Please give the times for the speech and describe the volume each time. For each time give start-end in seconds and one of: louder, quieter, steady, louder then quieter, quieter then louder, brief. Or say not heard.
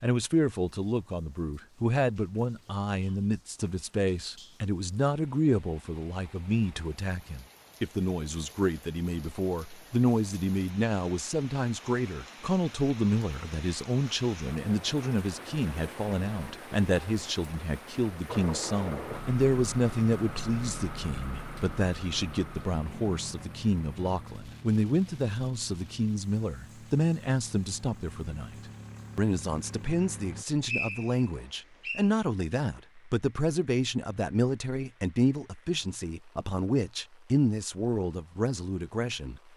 0.0-28.6 steady
29.1-39.4 steady.